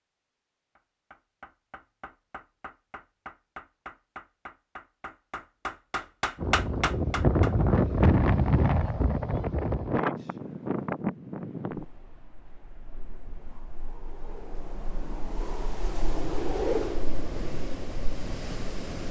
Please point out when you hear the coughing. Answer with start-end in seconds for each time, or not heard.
not heard.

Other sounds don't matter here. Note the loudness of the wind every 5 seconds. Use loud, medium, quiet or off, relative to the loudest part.
off, loud, medium, medium.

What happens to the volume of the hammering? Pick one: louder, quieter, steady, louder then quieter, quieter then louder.
louder.